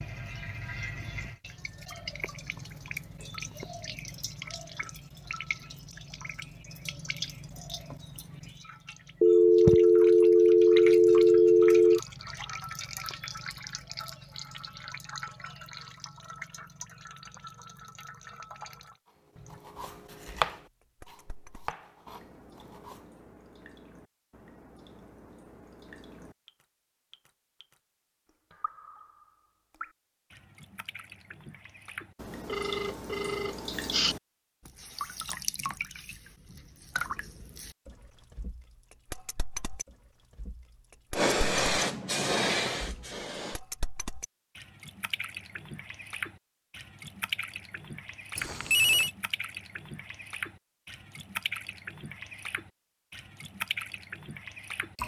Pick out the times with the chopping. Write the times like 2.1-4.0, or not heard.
19.5-23.0.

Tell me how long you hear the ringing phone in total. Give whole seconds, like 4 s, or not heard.
5 s.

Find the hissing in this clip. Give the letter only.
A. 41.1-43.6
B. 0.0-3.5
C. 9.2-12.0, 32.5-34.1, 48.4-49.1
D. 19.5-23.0
A.